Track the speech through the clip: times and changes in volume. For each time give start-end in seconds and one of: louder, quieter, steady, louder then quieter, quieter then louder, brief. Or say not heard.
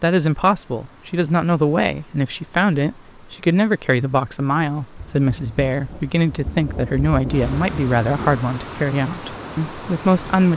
0.0-10.5 steady.